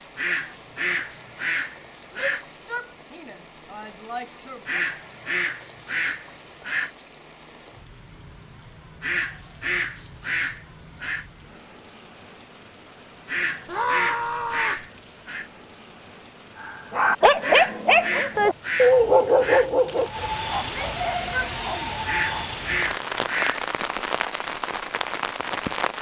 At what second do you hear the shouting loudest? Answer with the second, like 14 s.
14 s.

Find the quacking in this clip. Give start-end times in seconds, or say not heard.
0.1-2.5, 4.7-6.9, 9.0-11.2, 13.2-15.5, 17.4-19.7, 22.1-23.6.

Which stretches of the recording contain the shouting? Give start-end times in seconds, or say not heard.
2.1-4.8, 13.7-14.8, 20.6-22.1.